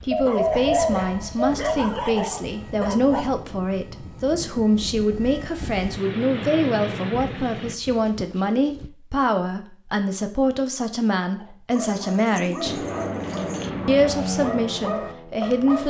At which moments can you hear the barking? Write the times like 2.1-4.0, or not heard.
0.0-3.2, 11.3-15.8.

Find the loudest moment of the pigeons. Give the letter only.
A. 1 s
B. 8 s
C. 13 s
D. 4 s
A.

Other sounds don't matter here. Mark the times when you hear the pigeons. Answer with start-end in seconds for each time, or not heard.
0.1-1.6, 7.2-8.9, 11.7-13.7.